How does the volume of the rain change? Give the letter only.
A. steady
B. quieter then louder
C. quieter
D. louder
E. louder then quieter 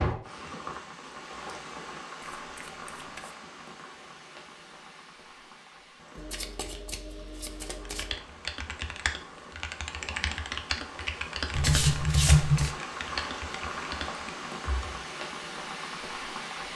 B.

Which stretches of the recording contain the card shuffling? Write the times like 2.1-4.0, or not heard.
2.5-3.4, 6.2-8.2, 11.6-12.7.